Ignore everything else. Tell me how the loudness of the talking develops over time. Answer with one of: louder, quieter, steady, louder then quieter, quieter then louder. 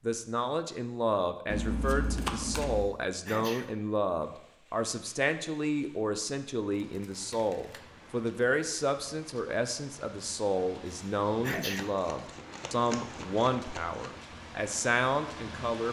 steady.